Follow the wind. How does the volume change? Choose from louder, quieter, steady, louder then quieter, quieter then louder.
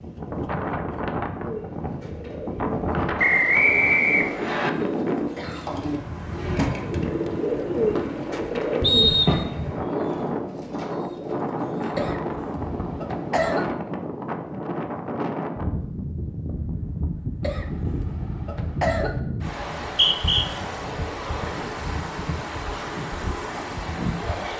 steady.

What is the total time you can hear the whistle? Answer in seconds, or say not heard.
3 s.